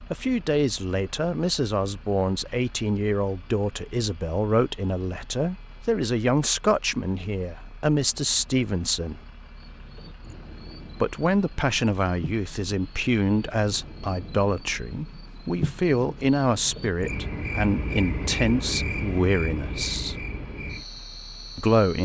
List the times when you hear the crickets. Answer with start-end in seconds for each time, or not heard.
9.6-22.0.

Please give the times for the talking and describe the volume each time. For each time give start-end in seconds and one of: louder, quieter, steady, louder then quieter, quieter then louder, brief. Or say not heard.
0.1-9.2 steady
11.0-20.2 steady
21.6-22.0 brief.